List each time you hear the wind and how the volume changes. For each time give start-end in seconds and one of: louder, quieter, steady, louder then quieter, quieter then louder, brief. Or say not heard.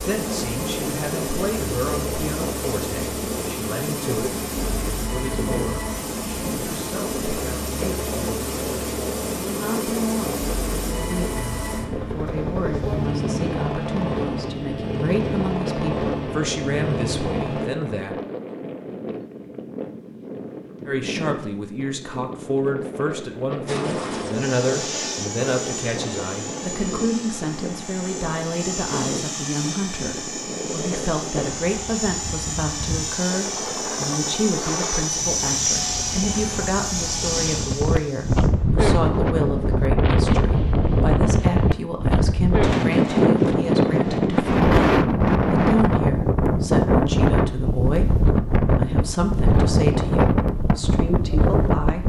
0.1-52.0 louder.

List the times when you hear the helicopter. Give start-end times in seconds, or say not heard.
0.0-17.6, 23.6-38.5.